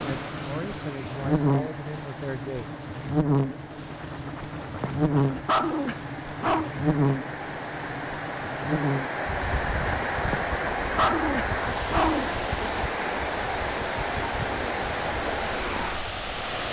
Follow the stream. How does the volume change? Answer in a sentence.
The volume of the stream goes up.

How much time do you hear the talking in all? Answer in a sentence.
The talking can be heard for 3 seconds in total.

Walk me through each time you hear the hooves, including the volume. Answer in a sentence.
You can't hear the hooves here.